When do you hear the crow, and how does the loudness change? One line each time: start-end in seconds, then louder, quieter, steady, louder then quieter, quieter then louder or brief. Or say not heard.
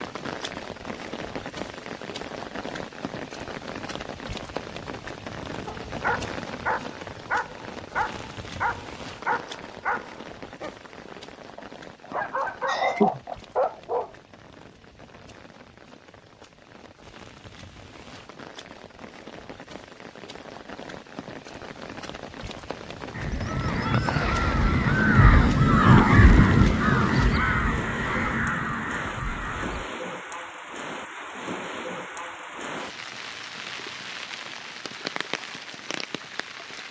23.1-29.9 louder then quieter.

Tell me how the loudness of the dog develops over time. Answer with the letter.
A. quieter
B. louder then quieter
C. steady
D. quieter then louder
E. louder
D.